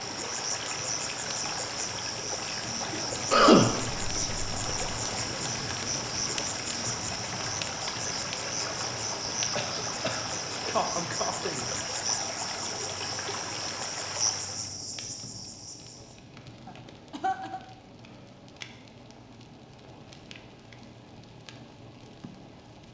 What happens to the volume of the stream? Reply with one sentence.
The loudness of the stream stays about the same.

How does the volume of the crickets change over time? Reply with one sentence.
The volume of the crickets stays about the same.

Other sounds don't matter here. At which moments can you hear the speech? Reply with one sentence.
You can't hear the speech here.